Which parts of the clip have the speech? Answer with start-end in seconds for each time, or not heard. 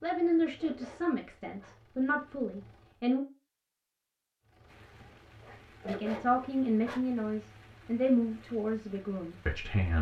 0.0-3.2, 5.8-9.9.